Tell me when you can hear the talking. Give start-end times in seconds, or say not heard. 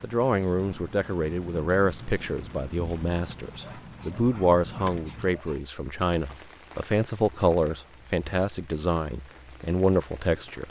0.0-10.6.